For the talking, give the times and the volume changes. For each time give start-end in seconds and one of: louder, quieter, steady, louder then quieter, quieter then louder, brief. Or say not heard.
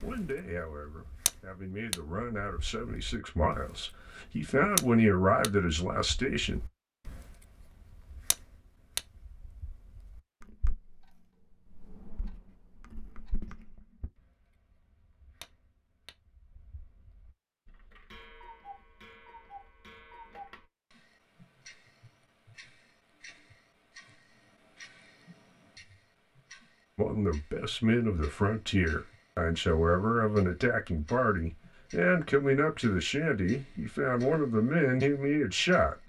0.0-6.6 louder
26.9-36.0 steady.